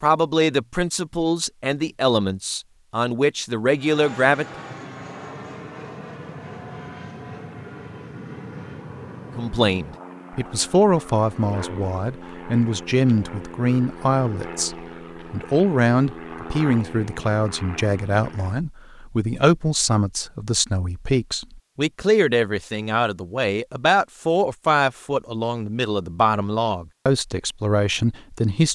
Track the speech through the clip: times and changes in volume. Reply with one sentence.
The speech can be heard from 0.0 to 4.5 s, at a steady volume; and from 9.3 to 28.7 s, at a steady volume.